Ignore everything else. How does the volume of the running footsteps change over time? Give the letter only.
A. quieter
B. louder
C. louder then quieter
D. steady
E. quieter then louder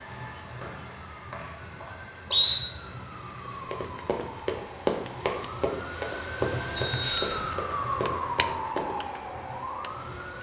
A.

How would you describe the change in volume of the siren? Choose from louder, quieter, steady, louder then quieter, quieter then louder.
louder.